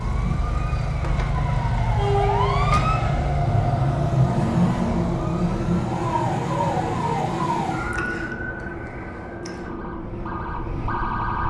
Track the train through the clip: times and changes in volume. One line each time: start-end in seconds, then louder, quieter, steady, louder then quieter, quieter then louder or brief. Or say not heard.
0.0-11.4 quieter.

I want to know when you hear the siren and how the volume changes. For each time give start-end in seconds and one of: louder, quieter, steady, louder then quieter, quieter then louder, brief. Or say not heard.
0.0-11.4 louder then quieter.